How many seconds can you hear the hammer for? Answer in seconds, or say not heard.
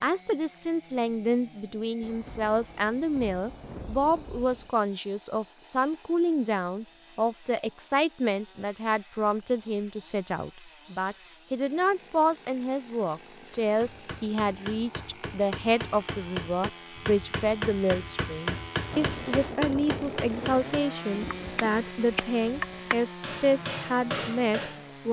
11 s.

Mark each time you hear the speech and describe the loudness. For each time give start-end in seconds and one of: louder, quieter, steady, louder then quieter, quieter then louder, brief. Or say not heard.
0.0-25.0 steady.